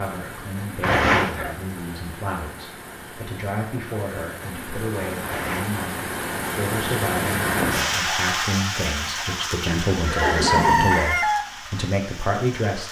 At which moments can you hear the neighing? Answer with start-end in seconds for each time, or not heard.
0.8-1.6, 5.2-5.8, 9.1-10.9.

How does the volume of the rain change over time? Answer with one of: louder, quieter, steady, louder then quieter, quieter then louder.
louder then quieter.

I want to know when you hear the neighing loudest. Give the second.
1 s.